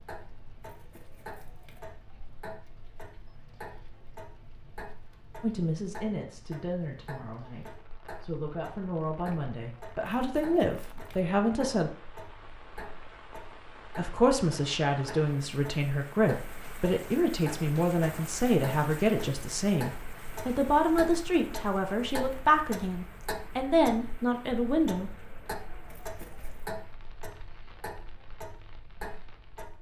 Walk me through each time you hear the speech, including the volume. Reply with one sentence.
You can hear the speech from 5.4 to 11.9 s, getting quieter then louder; and from 13.9 to 25.1 s, at a steady volume.